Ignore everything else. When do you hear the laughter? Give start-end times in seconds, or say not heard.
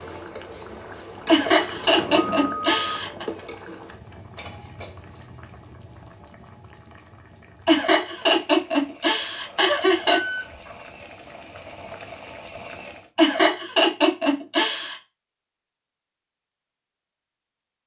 1.2-3.2, 7.7-10.2, 13.2-14.9.